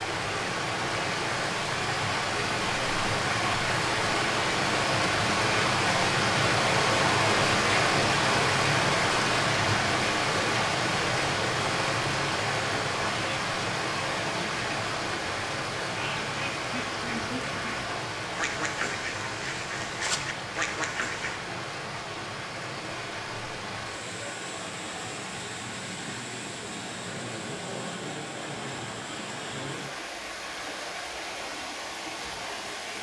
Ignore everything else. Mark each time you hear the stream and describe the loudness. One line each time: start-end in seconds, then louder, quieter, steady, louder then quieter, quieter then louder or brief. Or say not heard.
0.0-32.9 quieter.